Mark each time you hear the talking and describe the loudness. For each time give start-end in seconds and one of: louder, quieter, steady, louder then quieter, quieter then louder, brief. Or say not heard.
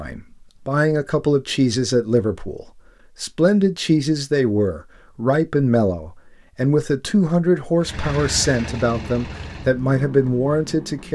0.0-11.0 steady.